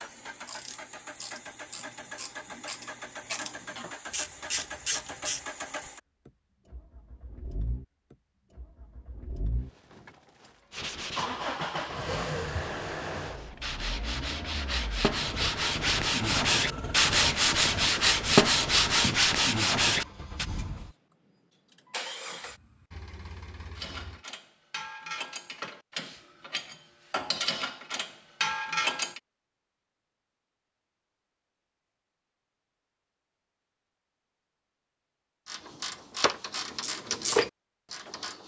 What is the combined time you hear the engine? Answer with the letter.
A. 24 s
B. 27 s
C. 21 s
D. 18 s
A.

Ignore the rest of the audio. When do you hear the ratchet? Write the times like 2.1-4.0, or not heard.
0.1-5.4, 23.8-29.2, 35.5-38.4.